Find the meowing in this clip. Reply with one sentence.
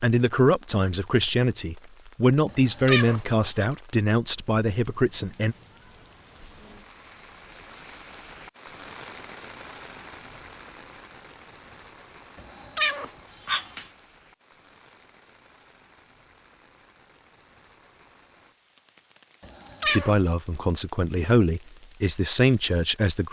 You can hear the meowing from 2.5 to 3.6 s, from 12.3 to 13.8 s and from 19.4 to 20.1 s.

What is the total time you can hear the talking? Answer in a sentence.
The talking can be heard for 9 seconds in total.